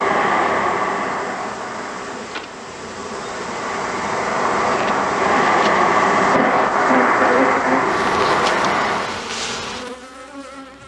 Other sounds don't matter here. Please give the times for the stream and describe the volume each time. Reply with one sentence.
The stream can be heard from 0.0 to 9.2 s, getting quieter then louder.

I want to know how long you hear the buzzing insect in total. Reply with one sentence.
The buzzing insect can be heard for 11 seconds in total.